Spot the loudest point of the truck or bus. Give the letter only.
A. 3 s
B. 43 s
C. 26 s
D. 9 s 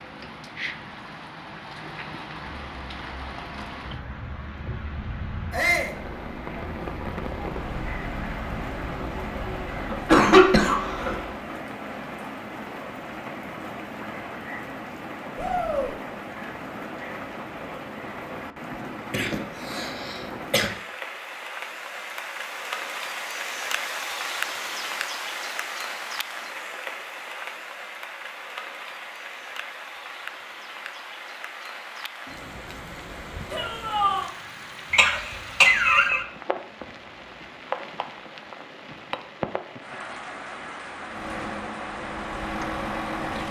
B.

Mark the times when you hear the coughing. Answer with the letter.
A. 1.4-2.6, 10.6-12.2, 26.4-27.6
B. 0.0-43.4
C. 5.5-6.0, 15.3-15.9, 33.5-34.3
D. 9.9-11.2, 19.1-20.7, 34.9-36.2
D.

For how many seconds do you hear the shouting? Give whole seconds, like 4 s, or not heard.
2 s.